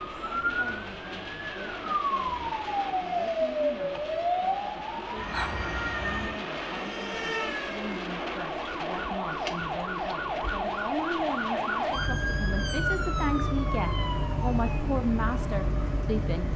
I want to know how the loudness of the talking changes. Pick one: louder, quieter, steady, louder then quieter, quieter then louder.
louder.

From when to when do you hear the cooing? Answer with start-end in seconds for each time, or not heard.
not heard.